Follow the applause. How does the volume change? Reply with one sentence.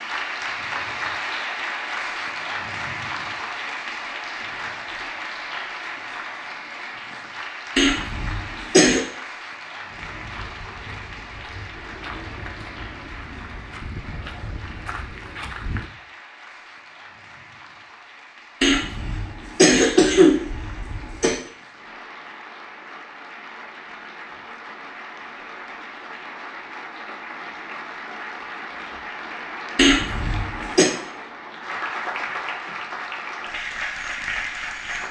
The loudness of the applause goes down, then up.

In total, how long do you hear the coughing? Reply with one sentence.
The coughing can be heard for 5 seconds in total.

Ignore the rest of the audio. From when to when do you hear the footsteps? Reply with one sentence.
The footsteps can be heard from 9.9 to 15.9 s.